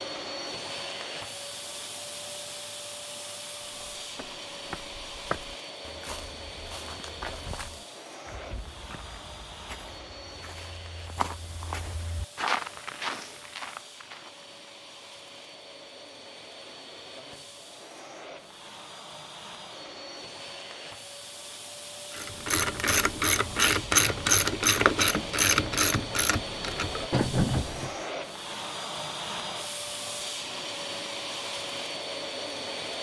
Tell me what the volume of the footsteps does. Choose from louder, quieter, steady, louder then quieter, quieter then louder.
quieter then louder.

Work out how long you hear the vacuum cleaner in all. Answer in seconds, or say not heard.
33 s.